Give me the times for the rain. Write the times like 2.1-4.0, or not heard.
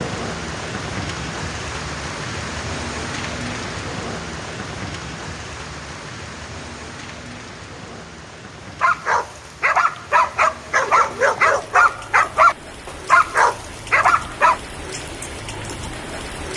0.0-16.5.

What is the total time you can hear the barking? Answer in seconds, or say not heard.
6 s.